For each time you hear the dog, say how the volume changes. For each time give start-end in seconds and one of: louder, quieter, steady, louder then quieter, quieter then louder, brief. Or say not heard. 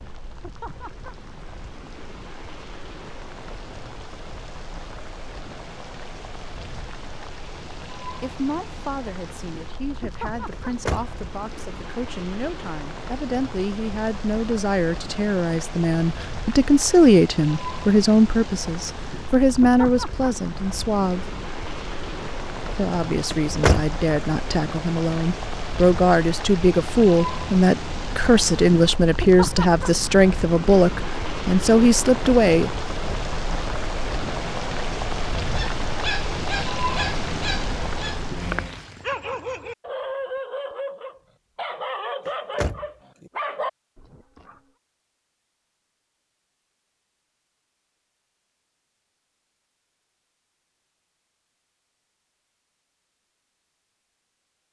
35.4-44.5 steady.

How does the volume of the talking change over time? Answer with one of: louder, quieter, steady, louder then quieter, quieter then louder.
louder.